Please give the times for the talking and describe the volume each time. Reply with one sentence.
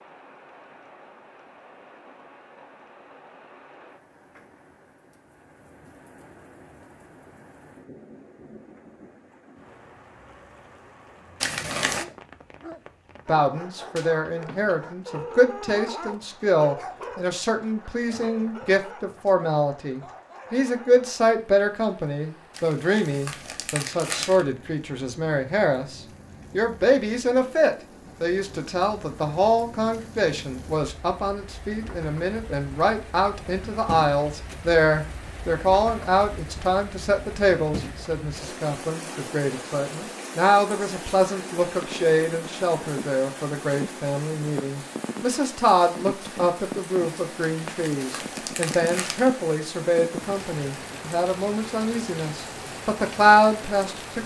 The talking can be heard from 13.2 to 54.2 s, at a steady volume.